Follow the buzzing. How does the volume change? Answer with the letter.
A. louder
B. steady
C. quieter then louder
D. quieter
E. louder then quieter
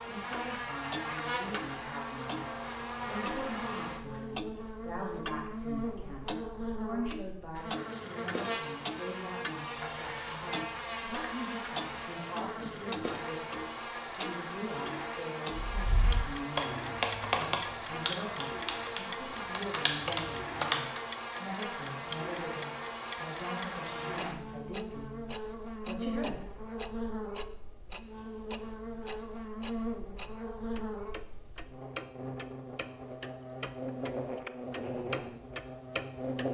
B.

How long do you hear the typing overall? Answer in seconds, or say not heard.
5 s.